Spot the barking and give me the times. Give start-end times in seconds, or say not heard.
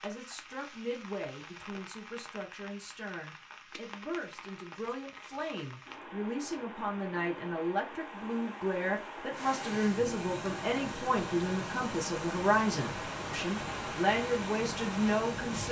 not heard.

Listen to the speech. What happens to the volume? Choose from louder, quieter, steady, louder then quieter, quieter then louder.
louder.